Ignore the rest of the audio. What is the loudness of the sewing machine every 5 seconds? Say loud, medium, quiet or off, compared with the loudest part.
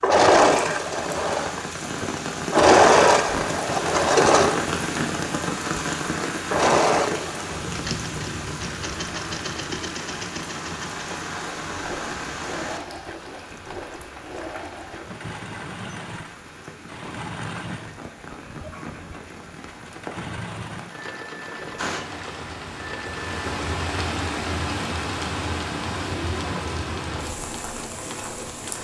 loud, medium, quiet, quiet, quiet, quiet.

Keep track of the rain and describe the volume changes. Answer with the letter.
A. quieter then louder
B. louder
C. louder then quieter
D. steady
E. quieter
A.